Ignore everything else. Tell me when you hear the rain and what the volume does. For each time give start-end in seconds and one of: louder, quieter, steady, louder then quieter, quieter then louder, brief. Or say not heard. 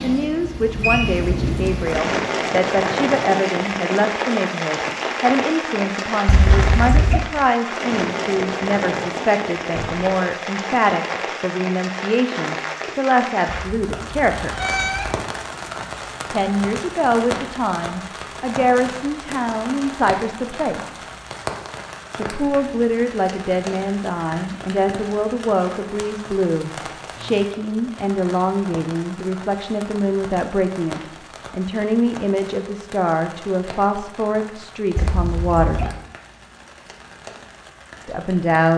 0.0-38.7 quieter.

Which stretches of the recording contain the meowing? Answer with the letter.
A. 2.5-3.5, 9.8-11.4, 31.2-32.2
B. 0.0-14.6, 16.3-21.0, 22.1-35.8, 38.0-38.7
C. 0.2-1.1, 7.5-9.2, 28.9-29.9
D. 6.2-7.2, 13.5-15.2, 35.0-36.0
D.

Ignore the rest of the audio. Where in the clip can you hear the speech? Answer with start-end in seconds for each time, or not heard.
0.0-14.6, 16.3-21.0, 22.1-35.8, 38.0-38.7.